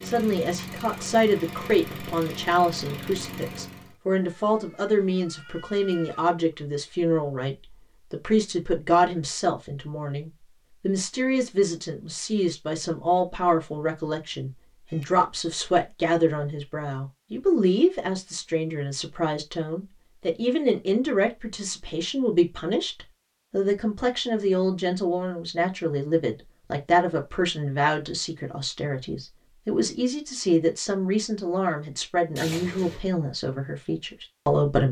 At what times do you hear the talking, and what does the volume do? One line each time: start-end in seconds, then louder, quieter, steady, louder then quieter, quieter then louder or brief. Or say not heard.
0.0-34.8 steady.